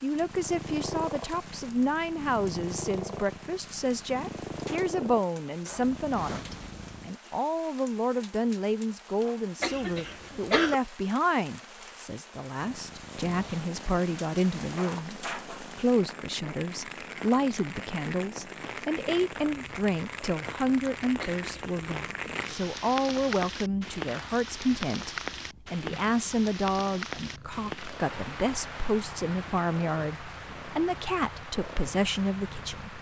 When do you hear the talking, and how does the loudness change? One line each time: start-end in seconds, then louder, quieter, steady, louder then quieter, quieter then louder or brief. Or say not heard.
0.0-32.9 steady.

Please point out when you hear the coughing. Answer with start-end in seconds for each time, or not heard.
9.6-10.8, 21.1-21.8.